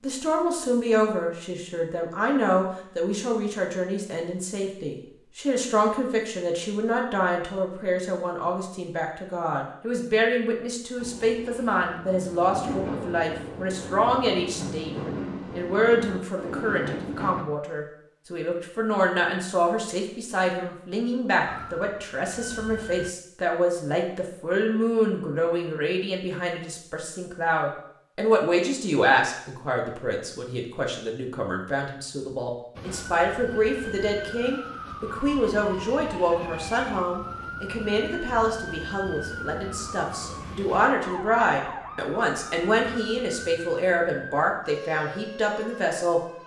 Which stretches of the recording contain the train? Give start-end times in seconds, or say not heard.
10.9-17.4.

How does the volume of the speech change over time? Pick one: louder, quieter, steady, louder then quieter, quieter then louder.
steady.